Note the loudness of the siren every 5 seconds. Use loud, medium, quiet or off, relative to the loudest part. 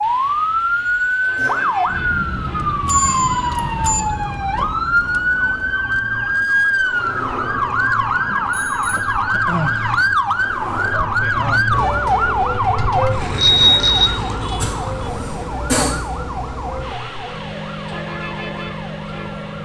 loud, loud, loud, medium.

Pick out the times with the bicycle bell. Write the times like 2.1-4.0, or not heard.
2.9-4.0, 8.4-9.1, 13.3-14.1.